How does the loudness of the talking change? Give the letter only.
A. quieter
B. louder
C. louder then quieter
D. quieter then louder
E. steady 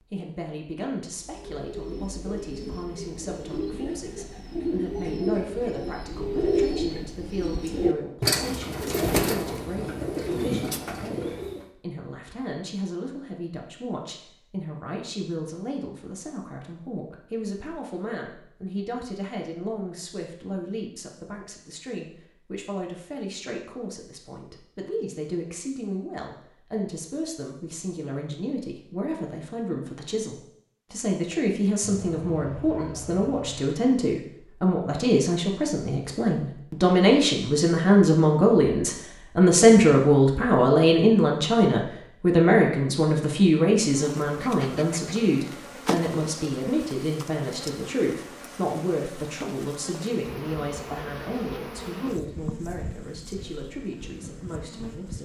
C.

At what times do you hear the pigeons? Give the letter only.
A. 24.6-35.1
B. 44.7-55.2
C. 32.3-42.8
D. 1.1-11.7
D.